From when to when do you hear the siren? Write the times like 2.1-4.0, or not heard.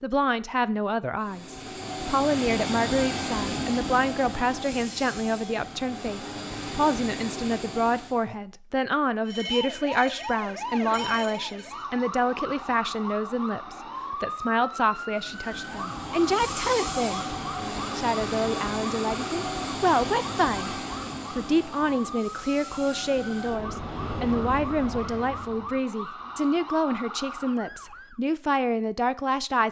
9.2-28.2.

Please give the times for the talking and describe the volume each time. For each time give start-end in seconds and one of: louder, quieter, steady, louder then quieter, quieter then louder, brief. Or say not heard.
0.0-17.4 steady
17.9-29.6 steady.